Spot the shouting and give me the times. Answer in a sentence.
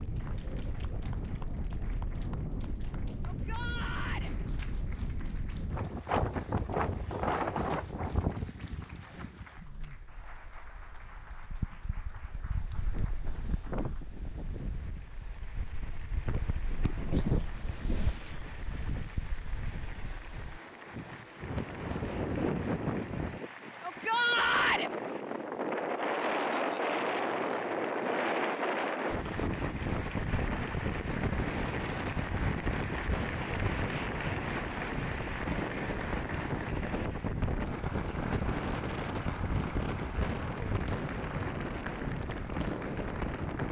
The shouting can be heard from 3.2 to 4.3 s and from 23.8 to 24.9 s.